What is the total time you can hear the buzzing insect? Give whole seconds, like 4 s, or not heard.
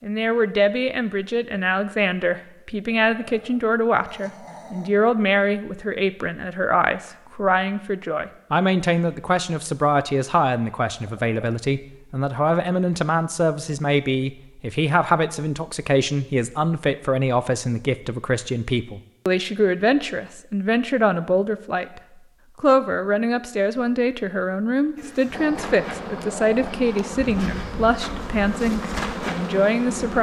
5 s.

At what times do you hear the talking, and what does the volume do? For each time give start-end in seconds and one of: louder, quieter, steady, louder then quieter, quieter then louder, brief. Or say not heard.
0.0-30.1 steady.